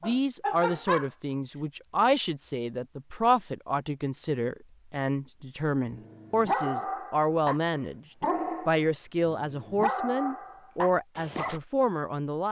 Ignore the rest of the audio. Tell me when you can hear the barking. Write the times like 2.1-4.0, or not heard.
0.0-1.4, 5.9-11.6.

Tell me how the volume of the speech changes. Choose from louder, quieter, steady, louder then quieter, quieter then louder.
steady.